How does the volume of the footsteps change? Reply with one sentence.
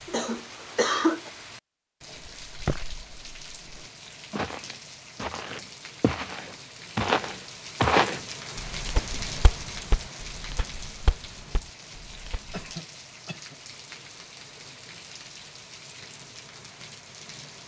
The loudness of the footsteps goes up, then down.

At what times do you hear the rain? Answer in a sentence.
You can hear the rain from 0.0 to 17.6 s.